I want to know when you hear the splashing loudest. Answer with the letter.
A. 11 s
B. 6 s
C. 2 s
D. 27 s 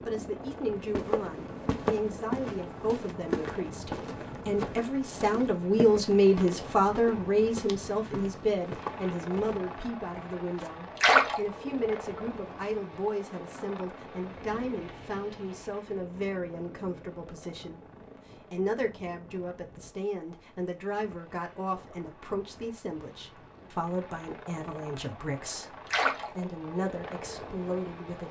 A.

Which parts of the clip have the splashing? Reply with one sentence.
The splashing can be heard from 10.9 to 11.4 s and from 25.9 to 26.3 s.